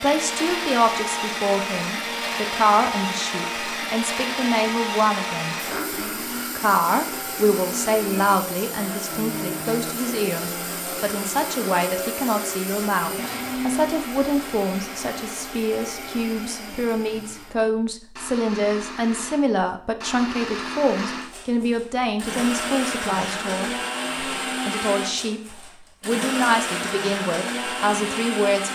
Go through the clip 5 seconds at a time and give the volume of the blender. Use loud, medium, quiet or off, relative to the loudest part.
loud, loud, loud, medium, loud, loud.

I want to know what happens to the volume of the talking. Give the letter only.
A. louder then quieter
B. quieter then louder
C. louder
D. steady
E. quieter
D.